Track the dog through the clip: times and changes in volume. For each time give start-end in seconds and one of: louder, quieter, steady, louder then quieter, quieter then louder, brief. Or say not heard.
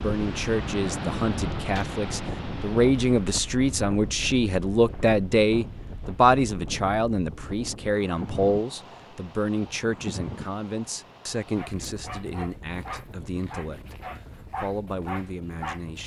11.4-16.0 steady.